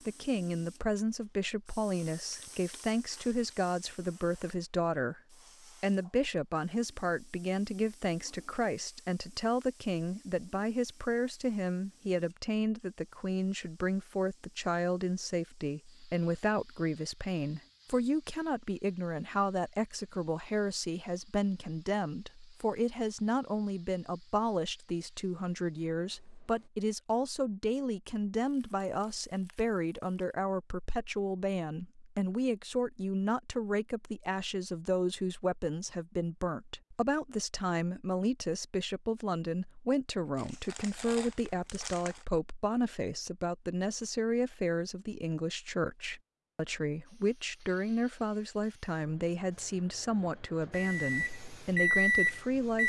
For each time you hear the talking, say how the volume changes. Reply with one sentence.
The talking can be heard from 0.1 to 52.8 s, at a steady volume.